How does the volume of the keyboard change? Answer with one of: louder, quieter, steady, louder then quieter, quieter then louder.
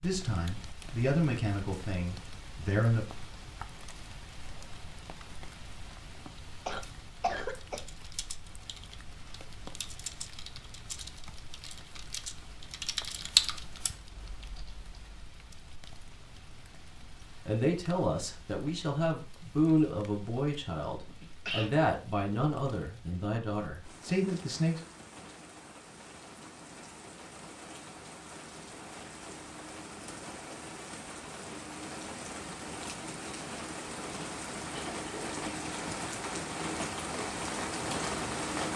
louder.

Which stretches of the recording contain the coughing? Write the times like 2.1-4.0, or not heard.
6.7-7.8, 21.1-21.7, 34.7-35.4.